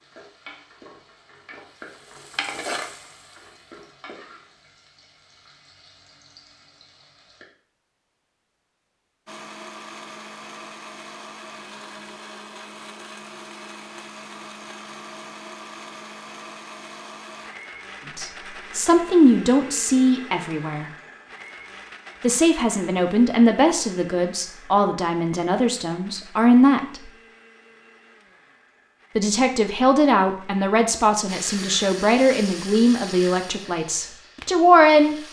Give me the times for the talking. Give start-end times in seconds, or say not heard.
18.1-20.9, 22.2-27.1, 29.1-35.1.